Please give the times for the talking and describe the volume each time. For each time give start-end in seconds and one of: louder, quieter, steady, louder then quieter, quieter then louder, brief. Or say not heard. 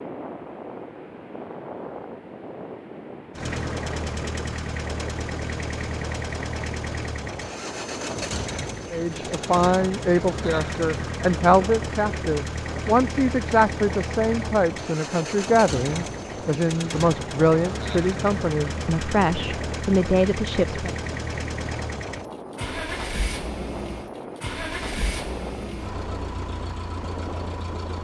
8.9-20.9 steady.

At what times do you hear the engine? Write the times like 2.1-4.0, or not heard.
3.3-27.9.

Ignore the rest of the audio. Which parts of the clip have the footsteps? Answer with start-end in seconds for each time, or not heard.
not heard.